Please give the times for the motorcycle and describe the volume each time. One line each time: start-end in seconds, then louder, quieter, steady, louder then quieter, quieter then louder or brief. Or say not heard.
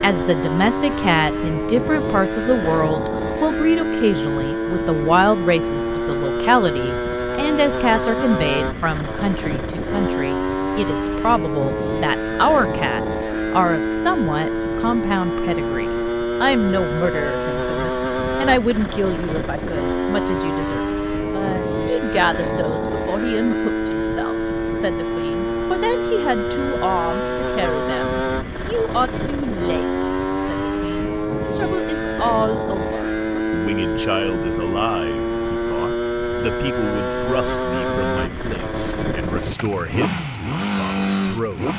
0.0-41.7 steady.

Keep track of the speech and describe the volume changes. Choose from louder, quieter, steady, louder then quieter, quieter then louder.
quieter.